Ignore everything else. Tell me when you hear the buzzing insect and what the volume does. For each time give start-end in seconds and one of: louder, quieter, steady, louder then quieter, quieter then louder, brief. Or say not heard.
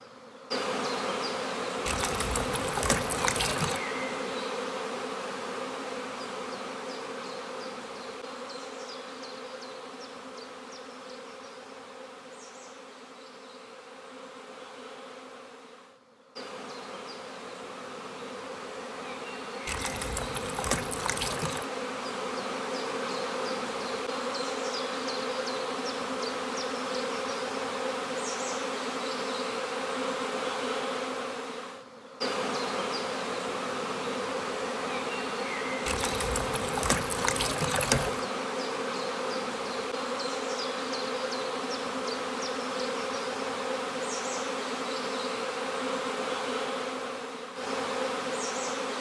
0.0-48.9 quieter then louder.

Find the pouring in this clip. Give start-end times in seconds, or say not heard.
1.9-3.8, 19.6-21.6, 35.9-38.2.